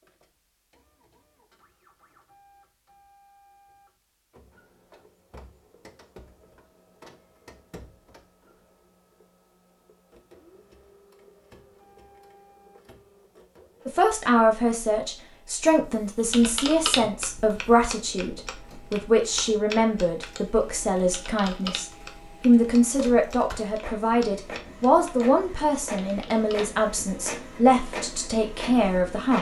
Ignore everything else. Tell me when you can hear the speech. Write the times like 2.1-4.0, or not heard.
13.8-29.3.